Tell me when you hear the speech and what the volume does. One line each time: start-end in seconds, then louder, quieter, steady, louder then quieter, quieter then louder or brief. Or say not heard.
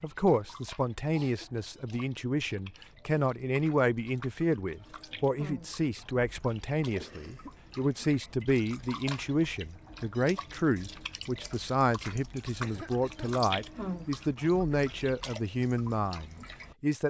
0.0-17.0 steady.